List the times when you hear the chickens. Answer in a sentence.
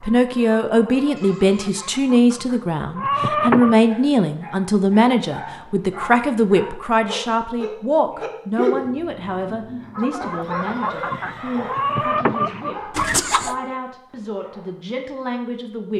You can hear the chickens from 0.0 to 3.8 s and from 9.9 to 13.6 s.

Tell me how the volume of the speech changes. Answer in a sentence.
The loudness of the speech goes down.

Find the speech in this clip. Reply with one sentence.
The speech can be heard from 0.0 to 15.9 s.